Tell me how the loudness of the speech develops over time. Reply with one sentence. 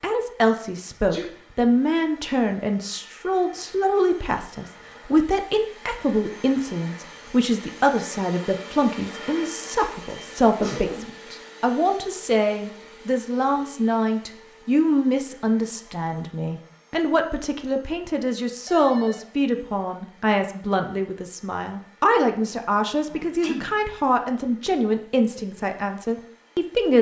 The volume of the speech stays about the same.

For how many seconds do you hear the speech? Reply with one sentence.
You can hear the speech for 27 seconds altogether.